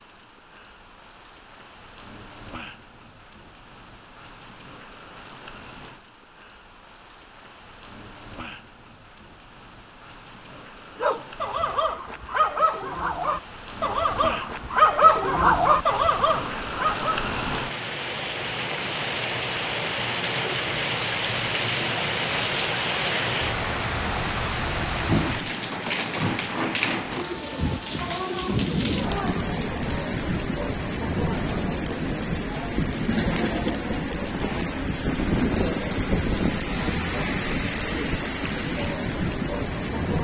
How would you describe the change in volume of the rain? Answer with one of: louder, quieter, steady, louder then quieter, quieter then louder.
louder.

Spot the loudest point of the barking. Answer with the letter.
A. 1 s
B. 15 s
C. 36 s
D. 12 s
B.